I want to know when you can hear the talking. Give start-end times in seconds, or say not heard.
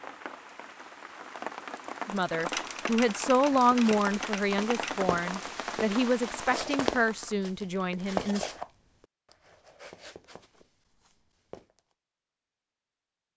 2.0-8.4.